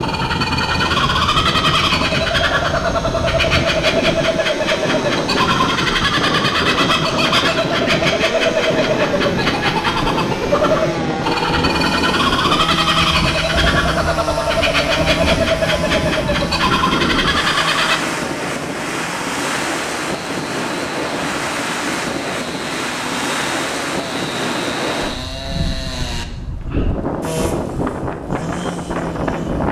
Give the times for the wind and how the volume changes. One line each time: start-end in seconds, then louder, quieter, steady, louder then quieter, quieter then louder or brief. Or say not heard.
0.0-29.6 steady.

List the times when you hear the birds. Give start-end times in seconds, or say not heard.
0.0-18.0.